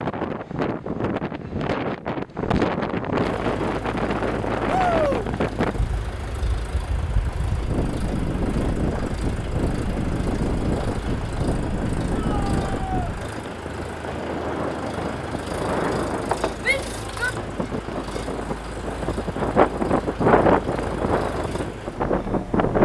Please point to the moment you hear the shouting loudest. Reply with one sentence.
The volume of the shouting peaks at 5 seconds.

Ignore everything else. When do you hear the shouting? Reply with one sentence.
The shouting can be heard from 4.7 to 5.2 s, from 12.2 to 13.2 s and from 16.6 to 17.4 s.